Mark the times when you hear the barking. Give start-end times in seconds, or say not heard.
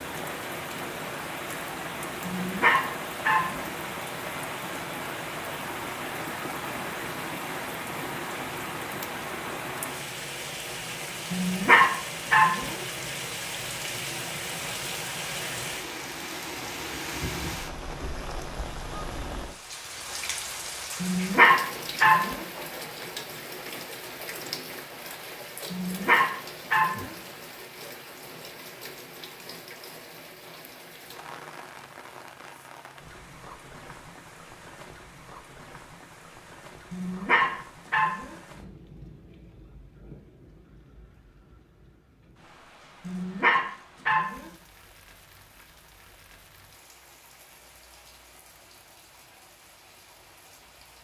2.2-3.6, 11.3-12.8, 21.0-22.4, 25.7-27.1, 36.9-38.4, 43.0-44.5.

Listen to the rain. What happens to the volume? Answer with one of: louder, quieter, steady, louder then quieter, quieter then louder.
quieter.